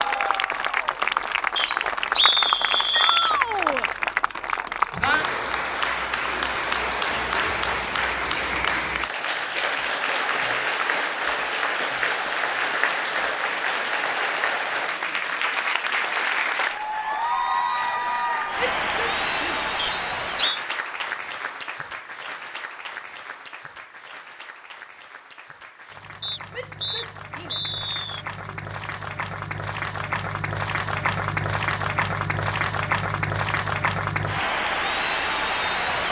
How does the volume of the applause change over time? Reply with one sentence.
The loudness of the applause goes down, then up.